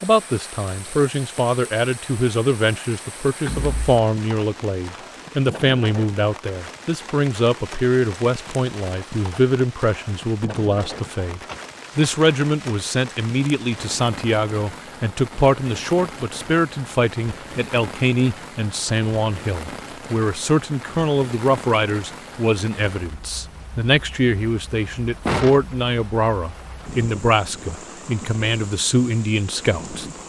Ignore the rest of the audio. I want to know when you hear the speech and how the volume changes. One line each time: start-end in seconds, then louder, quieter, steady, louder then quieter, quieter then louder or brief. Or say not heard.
0.0-30.1 steady.